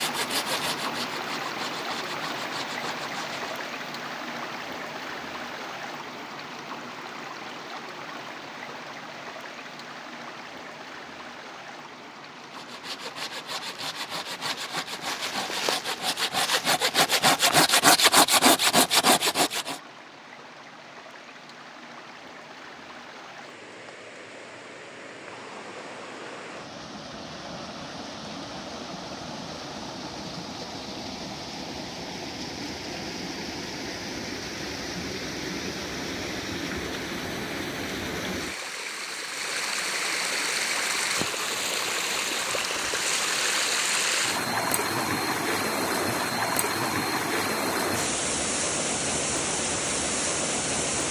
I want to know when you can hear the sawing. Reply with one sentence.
You can hear the sawing from 0.0 to 3.6 s and from 12.5 to 19.8 s.